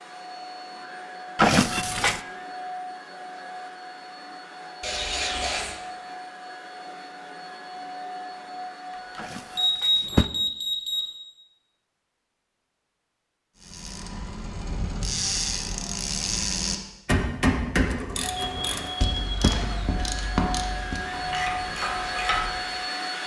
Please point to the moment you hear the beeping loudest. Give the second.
10 s.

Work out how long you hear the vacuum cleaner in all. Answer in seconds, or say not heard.
15 s.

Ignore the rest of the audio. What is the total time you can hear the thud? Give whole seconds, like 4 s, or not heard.
2 s.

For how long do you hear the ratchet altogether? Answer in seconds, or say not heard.
9 s.